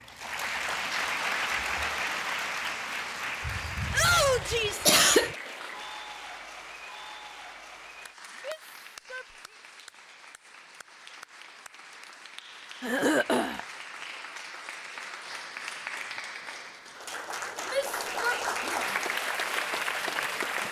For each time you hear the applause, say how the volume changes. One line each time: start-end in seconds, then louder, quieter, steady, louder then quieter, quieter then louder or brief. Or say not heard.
0.0-20.6 quieter then louder.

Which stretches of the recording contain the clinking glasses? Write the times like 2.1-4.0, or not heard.
not heard.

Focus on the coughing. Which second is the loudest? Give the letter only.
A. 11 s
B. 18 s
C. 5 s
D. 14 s
C.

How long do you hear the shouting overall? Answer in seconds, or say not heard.
3 s.